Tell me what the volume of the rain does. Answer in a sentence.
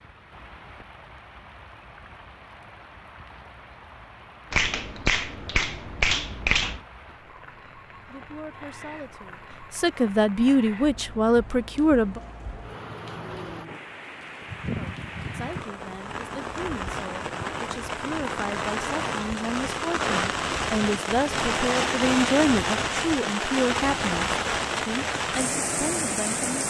The loudness of the rain goes up.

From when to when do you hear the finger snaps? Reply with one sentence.
The finger snaps can be heard from 4.5 to 6.8 s.